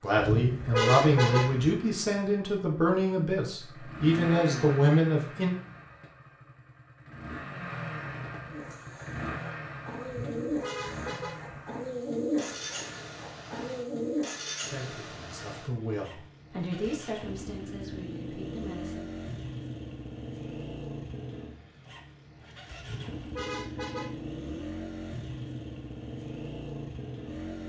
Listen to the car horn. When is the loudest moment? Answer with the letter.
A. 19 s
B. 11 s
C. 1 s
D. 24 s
C.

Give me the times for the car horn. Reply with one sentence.
The car horn can be heard from 0.1 to 1.8 s, from 10.1 to 11.6 s and from 22.8 to 24.4 s.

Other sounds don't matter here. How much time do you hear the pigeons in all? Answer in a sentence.
You can hear the pigeons for 6 seconds altogether.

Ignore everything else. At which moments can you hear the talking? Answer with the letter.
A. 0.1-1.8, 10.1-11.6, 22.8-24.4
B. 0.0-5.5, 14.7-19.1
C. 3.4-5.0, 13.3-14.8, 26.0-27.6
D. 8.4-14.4
B.